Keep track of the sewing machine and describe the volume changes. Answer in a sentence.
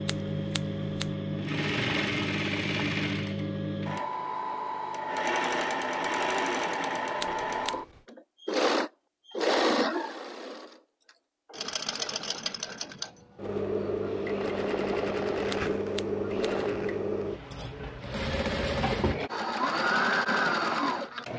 The volume of the sewing machine stays about the same.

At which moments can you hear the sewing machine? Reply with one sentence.
You can hear the sewing machine from 0.0 to 21.3 s.